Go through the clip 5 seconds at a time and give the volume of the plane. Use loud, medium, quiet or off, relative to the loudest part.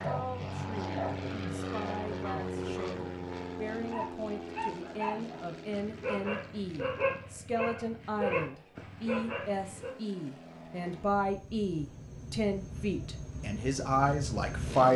loud, quiet, loud.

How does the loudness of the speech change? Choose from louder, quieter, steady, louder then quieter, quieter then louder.
louder.